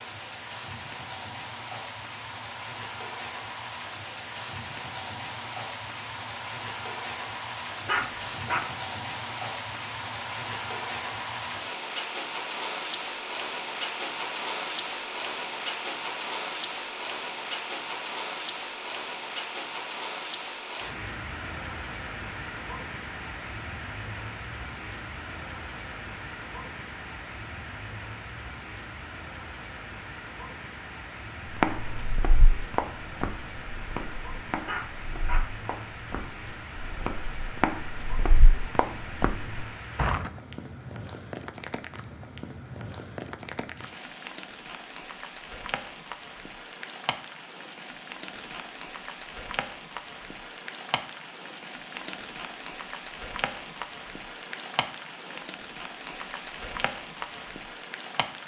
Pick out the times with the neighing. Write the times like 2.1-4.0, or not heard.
not heard.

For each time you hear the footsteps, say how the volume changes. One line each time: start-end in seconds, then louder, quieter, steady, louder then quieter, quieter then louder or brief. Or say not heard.
31.5-40.3 quieter then louder.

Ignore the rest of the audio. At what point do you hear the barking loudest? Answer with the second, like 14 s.
8 s.